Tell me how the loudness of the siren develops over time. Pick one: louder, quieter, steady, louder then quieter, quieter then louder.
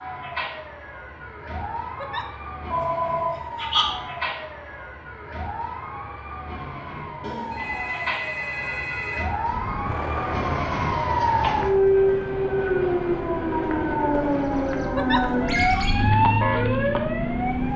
louder.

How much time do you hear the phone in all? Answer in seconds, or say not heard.
4 s.